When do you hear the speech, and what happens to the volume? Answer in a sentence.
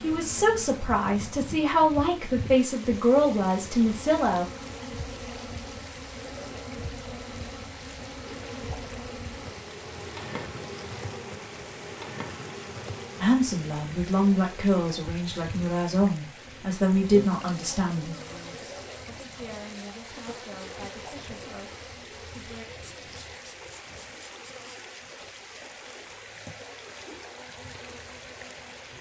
The speech can be heard from 0.0 to 4.5 s, at a steady volume; and from 13.2 to 22.6 s, getting quieter.